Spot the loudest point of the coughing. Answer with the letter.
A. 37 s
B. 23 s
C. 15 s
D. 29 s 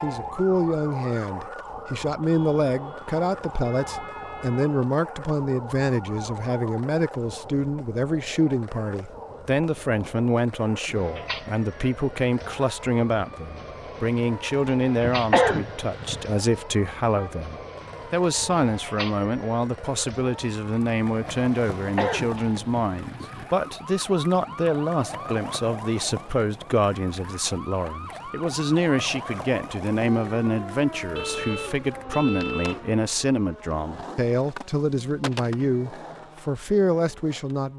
C.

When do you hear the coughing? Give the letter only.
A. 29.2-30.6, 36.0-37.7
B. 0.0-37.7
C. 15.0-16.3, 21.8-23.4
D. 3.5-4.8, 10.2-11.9
C.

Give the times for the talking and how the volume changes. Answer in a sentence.
The talking can be heard from 0.0 to 37.7 s, at a steady volume.